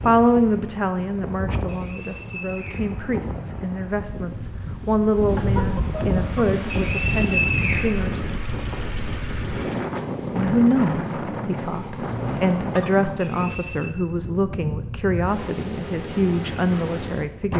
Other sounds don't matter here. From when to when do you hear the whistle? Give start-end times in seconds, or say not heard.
1.6-2.9, 6.7-8.0, 13.2-13.9.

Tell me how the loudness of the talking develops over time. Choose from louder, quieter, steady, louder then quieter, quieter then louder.
steady.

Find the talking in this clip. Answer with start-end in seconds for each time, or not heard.
0.0-8.2, 10.3-17.5.